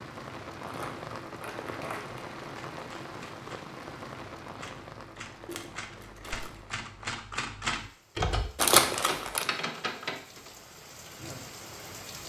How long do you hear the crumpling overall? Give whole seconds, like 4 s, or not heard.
4 s.